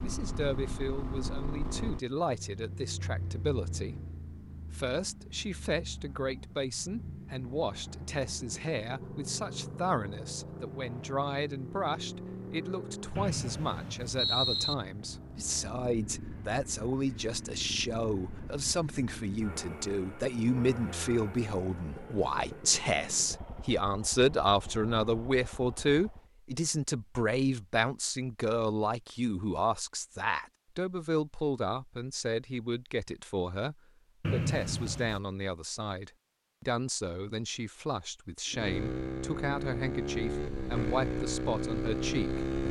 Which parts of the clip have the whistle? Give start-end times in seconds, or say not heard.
13.2-14.8, 34.2-35.2.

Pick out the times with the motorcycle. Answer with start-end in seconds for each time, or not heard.
0.0-26.3, 38.5-42.6.